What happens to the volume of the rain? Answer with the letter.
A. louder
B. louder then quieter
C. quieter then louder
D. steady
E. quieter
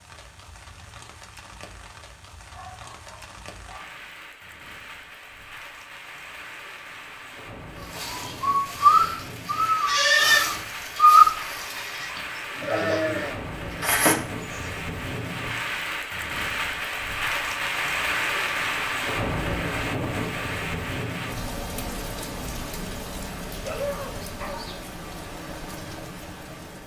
B.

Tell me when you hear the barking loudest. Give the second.
24 s.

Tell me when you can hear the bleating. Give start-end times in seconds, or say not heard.
8.0-14.7.